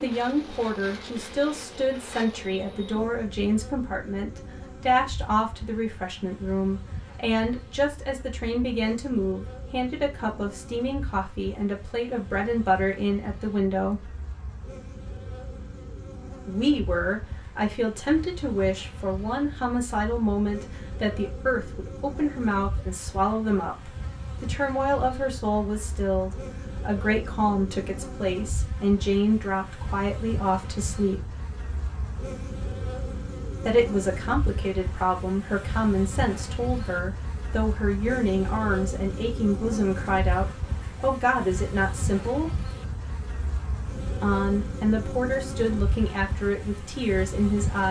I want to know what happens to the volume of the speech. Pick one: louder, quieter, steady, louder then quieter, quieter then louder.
steady.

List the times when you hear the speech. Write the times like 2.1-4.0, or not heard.
0.0-14.1, 16.4-31.3, 33.6-42.6, 44.2-47.8.